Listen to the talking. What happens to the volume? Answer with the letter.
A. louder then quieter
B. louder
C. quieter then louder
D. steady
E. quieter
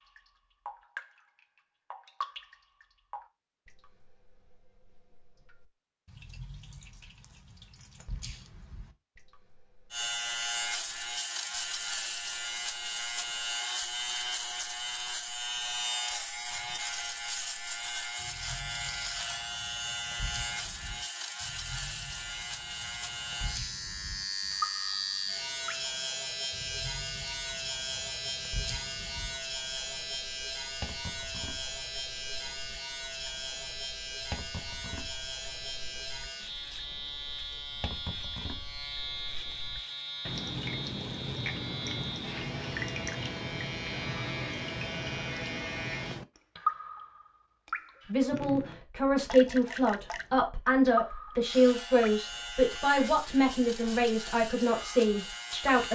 D.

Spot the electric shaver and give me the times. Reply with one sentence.
You can hear the electric shaver from 9.9 to 46.2 s and from 51.5 to 55.9 s.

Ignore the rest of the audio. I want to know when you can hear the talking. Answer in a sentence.
You can hear the talking from 48.1 to 55.9 s.